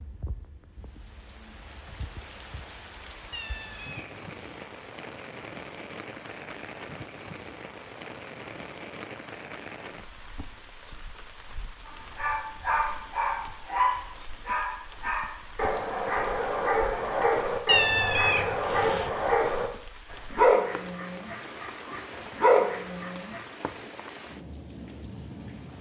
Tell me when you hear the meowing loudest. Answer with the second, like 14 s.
18 s.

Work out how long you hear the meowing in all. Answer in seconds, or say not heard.
3 s.